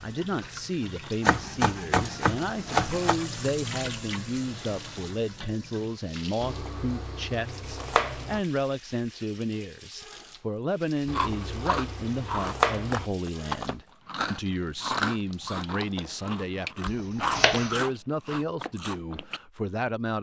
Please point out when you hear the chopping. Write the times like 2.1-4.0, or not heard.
1.2-3.2, 6.4-8.4, 11.1-13.1, 16.9-17.8.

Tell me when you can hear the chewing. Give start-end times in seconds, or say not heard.
11.1-19.4.